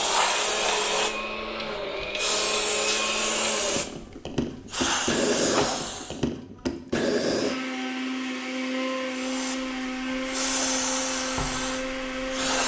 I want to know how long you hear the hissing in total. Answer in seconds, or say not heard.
10 s.